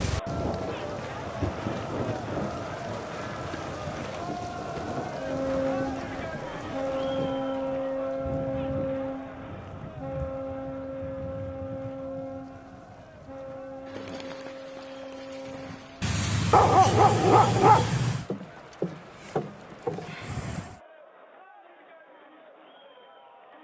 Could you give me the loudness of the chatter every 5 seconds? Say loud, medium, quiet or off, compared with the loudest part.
loud, loud, quiet, quiet, quiet.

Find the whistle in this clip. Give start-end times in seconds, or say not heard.
not heard.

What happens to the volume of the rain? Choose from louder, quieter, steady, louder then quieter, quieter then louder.
quieter.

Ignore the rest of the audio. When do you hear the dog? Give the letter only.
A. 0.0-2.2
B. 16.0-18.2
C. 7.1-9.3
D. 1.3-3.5
B.